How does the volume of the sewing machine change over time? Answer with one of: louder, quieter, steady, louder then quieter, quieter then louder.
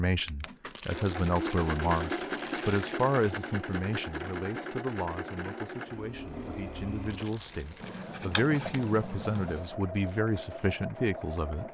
quieter.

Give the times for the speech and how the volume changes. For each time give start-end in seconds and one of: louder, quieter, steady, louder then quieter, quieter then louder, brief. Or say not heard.
0.0-11.6 quieter then louder.